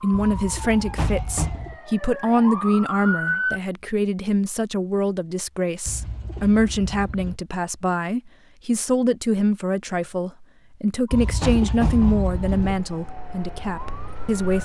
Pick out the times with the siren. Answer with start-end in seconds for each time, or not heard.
0.0-3.6, 11.1-14.5.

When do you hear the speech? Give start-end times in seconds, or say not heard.
0.0-14.5.